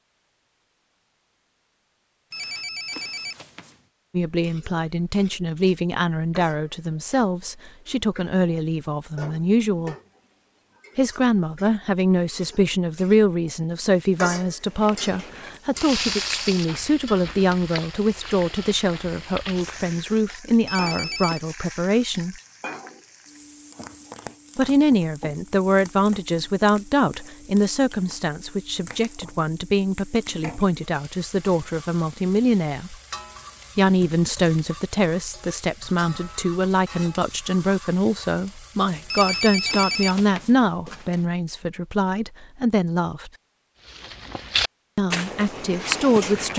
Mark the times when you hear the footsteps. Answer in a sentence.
The footsteps can be heard from 14.6 to 20.2 s and from 43.9 to 46.5 s.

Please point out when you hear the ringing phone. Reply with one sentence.
The ringing phone can be heard from 2.3 to 3.8 s, from 20.6 to 21.4 s and from 39.1 to 41.2 s.